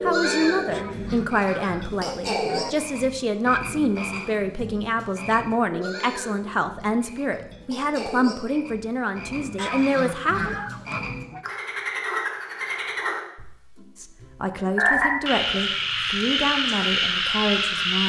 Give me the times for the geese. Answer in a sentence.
The geese can be heard from 0.7 to 2.7 s and from 9.6 to 11.4 s.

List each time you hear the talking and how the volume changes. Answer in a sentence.
The talking can be heard from 0.0 to 10.6 s, at a steady volume; and from 13.9 to 18.0 s, at a steady volume.